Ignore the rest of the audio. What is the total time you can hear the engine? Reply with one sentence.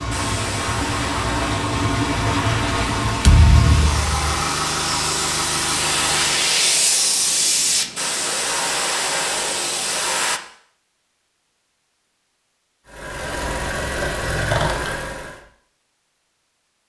The engine can be heard for 9 seconds in total.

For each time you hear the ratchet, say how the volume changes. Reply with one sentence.
The ratchet can't be heard in this clip.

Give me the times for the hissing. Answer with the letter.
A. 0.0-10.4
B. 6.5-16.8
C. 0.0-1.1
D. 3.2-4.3
A.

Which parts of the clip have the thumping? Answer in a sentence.
The thumping can be heard from 3.2 to 4.3 s.